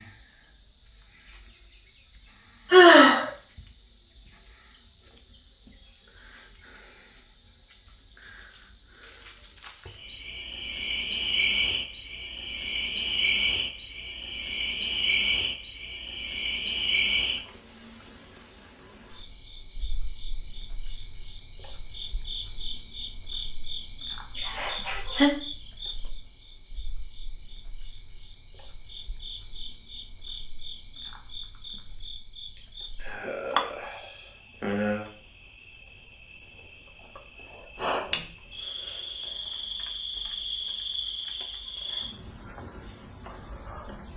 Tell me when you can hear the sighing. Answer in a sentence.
You can hear the sighing from 2.7 to 3.3 s, from 24.4 to 25.3 s and from 32.5 to 35.0 s.